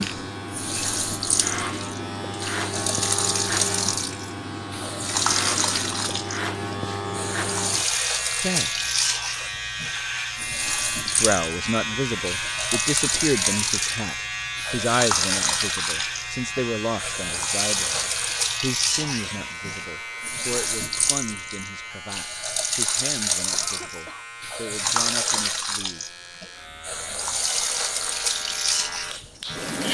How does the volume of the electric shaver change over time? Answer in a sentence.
The volume of the electric shaver goes down.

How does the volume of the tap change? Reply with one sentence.
The volume of the tap stays about the same.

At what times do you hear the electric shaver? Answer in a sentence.
The electric shaver can be heard from 0.0 to 29.9 s.